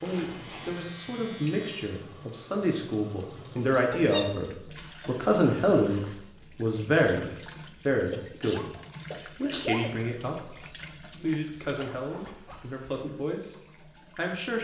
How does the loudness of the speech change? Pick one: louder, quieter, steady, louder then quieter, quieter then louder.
louder then quieter.